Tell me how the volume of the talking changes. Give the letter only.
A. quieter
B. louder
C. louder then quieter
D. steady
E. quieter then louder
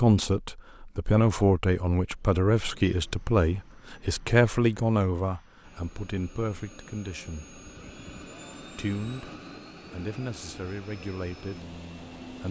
A.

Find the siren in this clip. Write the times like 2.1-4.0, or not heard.
not heard.